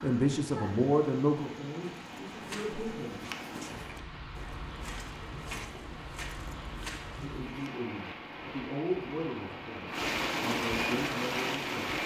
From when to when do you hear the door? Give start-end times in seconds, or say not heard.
not heard.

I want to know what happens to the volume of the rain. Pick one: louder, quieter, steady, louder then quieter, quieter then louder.
louder.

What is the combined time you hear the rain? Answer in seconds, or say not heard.
12 s.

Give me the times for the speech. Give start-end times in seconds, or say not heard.
0.0-3.2, 7.2-12.0.